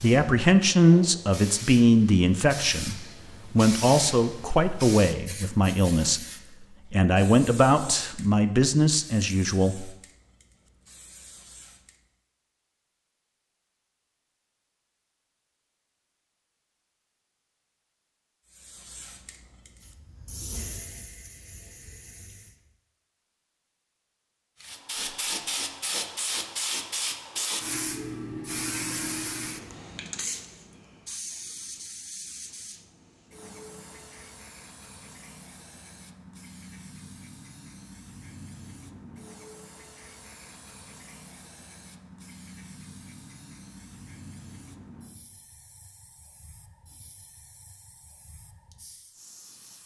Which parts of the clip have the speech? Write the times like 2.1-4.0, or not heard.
0.0-9.9.